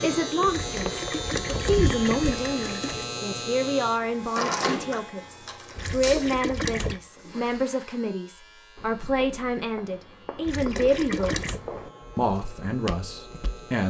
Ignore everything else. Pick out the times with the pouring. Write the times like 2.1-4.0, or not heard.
0.5-3.0, 5.8-7.0, 10.4-11.6.